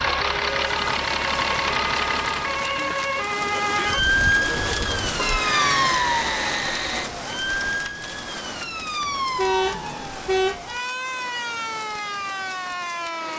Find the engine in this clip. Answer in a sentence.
You can hear the engine from 0.0 to 7.1 s.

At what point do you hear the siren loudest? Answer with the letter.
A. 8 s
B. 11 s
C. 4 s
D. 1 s
C.